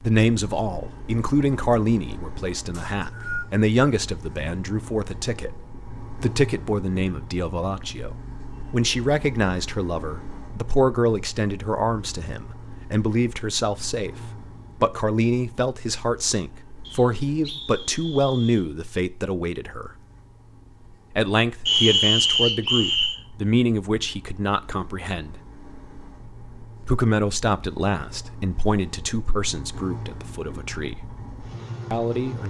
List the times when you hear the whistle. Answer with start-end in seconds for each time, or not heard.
2.7-3.5, 16.8-18.6, 21.6-23.1.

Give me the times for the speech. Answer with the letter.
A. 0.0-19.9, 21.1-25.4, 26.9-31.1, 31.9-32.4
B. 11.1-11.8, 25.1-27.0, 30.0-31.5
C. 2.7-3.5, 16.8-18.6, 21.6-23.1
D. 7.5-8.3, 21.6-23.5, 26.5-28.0
A.